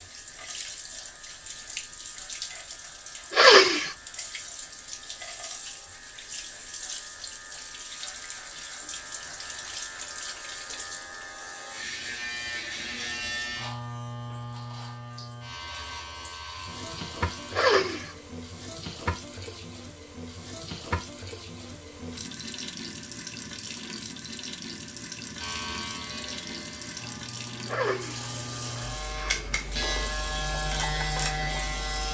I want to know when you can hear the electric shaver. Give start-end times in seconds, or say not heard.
0.0-17.6, 25.4-32.0.